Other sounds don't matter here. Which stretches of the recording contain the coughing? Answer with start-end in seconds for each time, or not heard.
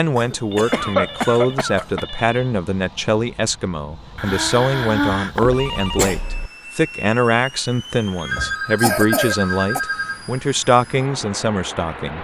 0.1-2.0, 4.2-6.2, 8.8-9.8.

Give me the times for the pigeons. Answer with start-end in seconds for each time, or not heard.
not heard.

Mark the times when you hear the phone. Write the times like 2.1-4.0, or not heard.
0.5-2.4, 5.5-6.5, 8.3-10.2.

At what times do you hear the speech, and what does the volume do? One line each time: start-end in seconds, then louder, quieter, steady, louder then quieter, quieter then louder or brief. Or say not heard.
0.0-12.1 steady.